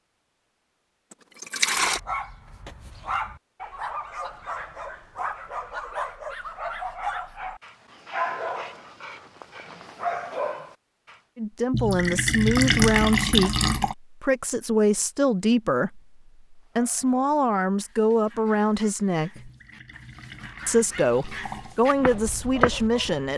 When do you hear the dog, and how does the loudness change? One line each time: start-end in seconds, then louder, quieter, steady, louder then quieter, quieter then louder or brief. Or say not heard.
1.8-11.2 steady
16.6-23.2 louder.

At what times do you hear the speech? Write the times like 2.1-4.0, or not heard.
11.3-19.5, 20.6-23.3.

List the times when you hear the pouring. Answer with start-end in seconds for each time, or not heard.
1.4-2.0, 11.7-13.9, 19.4-21.8.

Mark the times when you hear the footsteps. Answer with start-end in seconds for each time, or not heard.
21.6-23.1.